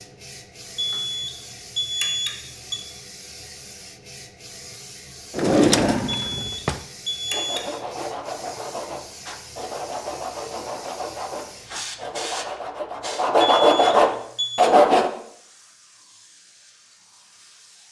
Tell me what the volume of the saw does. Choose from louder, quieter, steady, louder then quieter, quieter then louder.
louder.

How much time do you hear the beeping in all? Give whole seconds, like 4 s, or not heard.
5 s.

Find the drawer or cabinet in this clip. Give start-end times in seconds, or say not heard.
5.3-6.8.